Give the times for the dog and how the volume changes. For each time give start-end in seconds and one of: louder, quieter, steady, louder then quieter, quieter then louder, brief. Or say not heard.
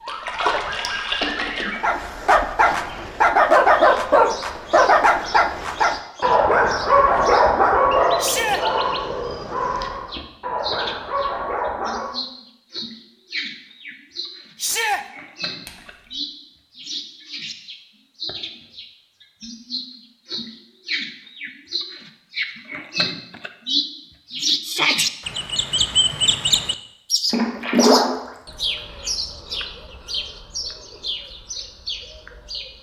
1.7-12.2 quieter.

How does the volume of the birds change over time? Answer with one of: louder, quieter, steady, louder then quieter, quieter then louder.
louder then quieter.